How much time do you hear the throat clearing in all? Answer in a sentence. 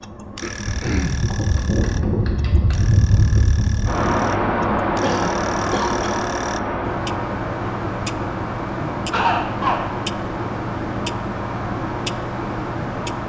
The throat clearing can be heard for 3 seconds in total.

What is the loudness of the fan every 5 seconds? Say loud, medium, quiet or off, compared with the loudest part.
loud, loud, medium.